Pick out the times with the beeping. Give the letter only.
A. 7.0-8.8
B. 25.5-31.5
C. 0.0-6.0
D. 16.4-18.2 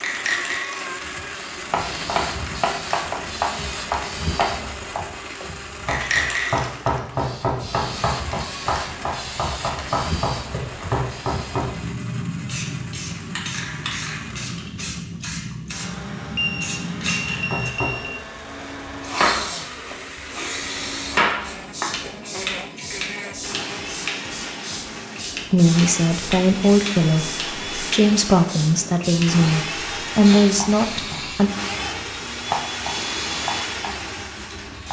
D.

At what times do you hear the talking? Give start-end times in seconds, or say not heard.
25.5-31.5.